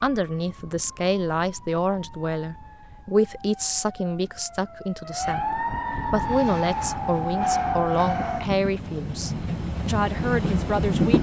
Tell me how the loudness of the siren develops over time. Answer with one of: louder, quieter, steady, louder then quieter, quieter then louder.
louder.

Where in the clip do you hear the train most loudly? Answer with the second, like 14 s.
11 s.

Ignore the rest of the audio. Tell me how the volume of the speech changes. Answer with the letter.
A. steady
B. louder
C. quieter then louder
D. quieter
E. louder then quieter
A.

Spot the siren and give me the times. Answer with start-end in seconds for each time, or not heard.
0.0-8.5.